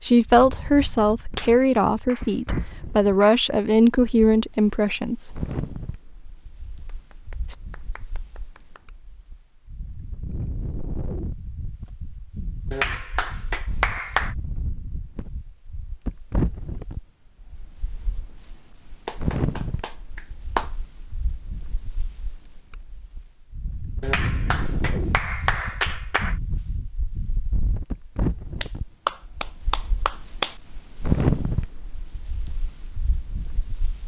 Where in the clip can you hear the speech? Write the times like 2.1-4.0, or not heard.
0.0-5.5.